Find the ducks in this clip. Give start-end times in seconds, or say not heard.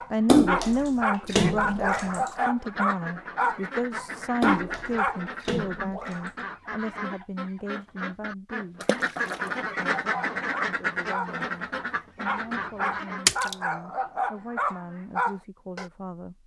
1.4-13.3.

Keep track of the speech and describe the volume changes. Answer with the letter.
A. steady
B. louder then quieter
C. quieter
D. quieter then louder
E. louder
C.